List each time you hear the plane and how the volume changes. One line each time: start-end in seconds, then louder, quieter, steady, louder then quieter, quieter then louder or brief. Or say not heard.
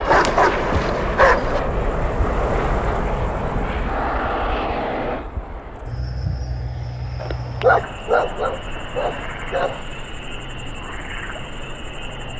0.0-12.3 quieter.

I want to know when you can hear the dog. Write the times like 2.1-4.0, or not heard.
0.1-1.6, 7.2-9.8.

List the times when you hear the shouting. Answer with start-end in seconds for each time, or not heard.
not heard.